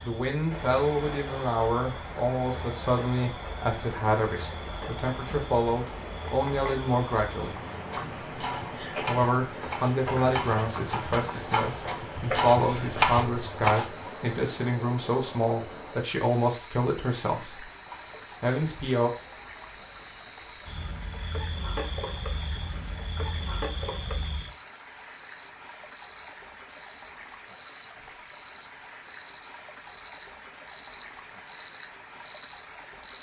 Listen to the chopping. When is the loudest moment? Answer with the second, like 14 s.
13 s.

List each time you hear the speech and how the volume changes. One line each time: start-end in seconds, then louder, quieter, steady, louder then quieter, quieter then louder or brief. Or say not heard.
0.0-7.5 steady
9.1-17.6 steady
18.4-19.1 brief.